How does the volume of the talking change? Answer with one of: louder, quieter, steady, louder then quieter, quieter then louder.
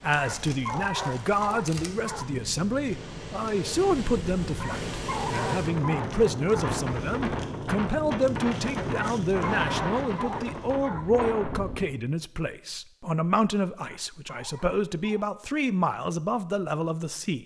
steady.